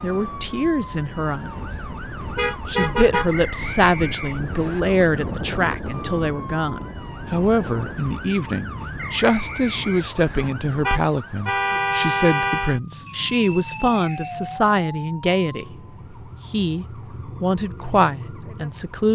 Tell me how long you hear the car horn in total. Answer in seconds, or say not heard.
4 s.